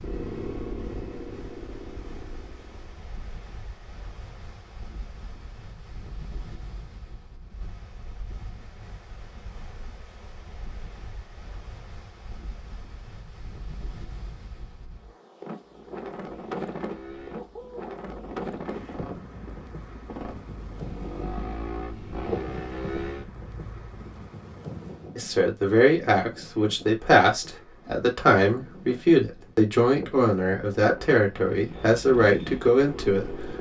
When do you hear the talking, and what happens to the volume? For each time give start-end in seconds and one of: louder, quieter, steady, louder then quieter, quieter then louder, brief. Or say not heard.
25.1-33.5 steady.